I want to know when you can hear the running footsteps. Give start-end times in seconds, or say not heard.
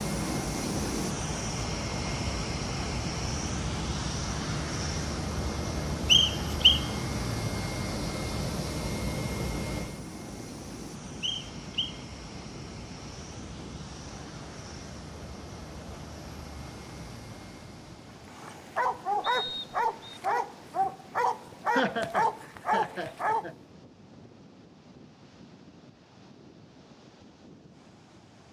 not heard.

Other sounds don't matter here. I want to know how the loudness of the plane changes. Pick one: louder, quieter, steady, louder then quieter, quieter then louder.
quieter.